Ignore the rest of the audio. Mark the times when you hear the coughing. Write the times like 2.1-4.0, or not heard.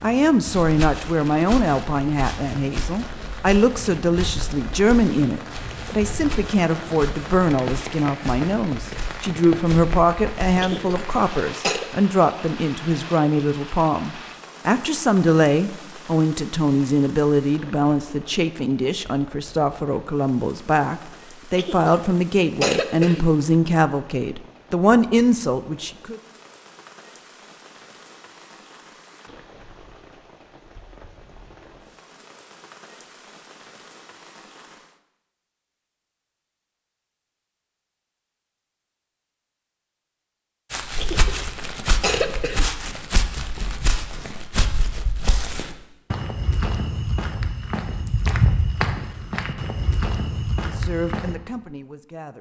10.6-11.9, 21.6-23.2, 41.0-42.6.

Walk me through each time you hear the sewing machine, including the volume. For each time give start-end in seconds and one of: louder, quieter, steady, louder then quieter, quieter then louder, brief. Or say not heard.
not heard.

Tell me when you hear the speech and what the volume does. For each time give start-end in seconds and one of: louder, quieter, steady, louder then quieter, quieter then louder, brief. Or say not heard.
0.0-26.2 steady
50.6-52.3 brief.